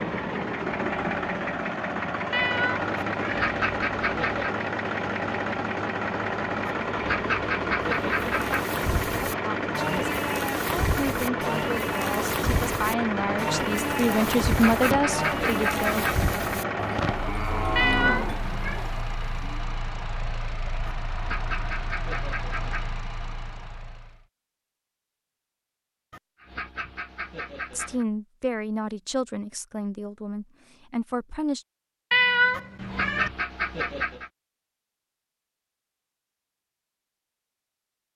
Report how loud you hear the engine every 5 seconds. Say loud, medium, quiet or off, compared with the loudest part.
loud, loud, loud, loud, medium, off, off, off.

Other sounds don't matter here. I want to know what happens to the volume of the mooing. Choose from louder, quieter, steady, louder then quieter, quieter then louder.
steady.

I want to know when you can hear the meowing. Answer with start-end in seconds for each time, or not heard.
2.3-3.5, 17.8-18.8, 32.1-33.3.